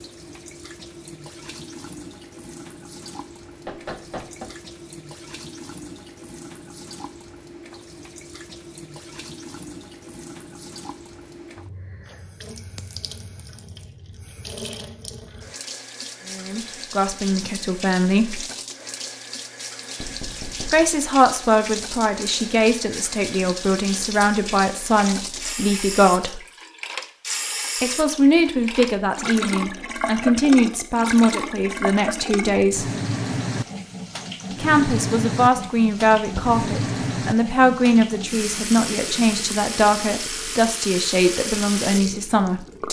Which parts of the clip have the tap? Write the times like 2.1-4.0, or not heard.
0.0-42.8.